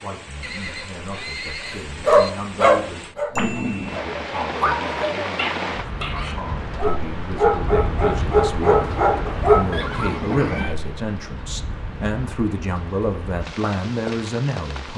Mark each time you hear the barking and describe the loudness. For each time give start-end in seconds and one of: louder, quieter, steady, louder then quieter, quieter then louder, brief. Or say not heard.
2.0-9.8 quieter then louder.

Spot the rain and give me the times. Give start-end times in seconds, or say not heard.
0.0-14.9.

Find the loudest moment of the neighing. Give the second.
10 s.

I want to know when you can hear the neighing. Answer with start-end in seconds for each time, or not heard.
0.4-2.3, 9.7-10.8.